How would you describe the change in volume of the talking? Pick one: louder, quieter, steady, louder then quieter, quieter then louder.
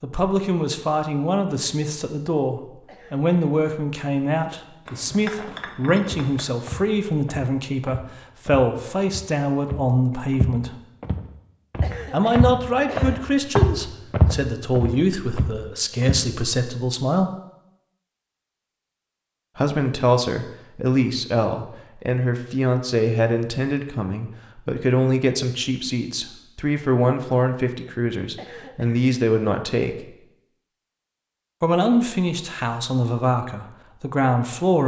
steady.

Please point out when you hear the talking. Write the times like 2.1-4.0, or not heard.
0.0-10.8, 12.1-17.3, 19.6-30.1, 31.6-34.8.